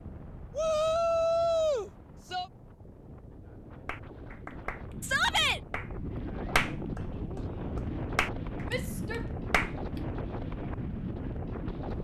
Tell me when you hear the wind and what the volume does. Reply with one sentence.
You can hear the wind from 0.0 to 11.9 s, getting louder.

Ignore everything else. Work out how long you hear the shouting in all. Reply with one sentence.
The shouting can be heard for 3 seconds in total.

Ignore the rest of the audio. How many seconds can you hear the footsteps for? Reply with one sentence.
You can't hear the footsteps here.